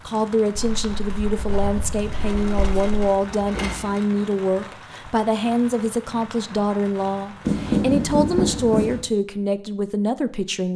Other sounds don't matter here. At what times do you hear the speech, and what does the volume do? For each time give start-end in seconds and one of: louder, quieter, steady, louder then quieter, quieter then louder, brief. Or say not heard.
0.1-10.7 steady.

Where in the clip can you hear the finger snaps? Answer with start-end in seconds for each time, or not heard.
not heard.